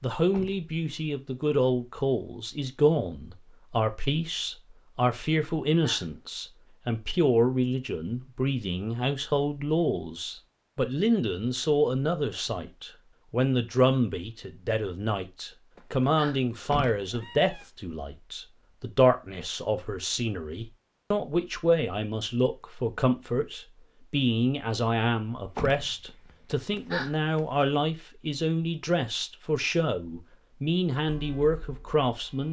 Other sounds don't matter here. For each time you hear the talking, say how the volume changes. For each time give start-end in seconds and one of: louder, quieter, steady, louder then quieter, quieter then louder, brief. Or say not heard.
0.0-32.4 steady.